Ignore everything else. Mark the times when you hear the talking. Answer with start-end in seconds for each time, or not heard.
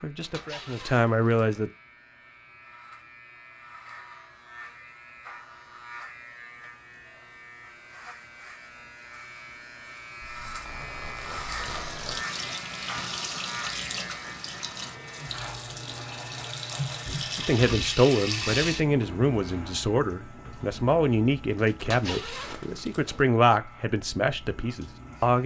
0.0-1.7, 17.1-25.4.